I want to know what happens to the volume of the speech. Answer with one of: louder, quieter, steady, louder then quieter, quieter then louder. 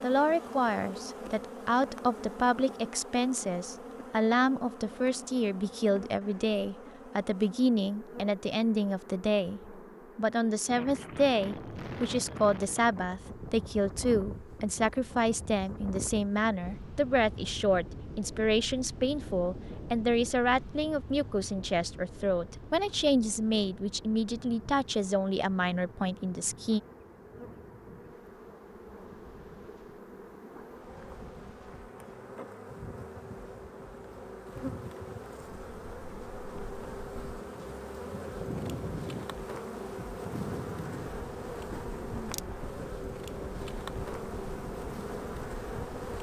steady.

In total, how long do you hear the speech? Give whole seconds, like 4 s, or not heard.
27 s.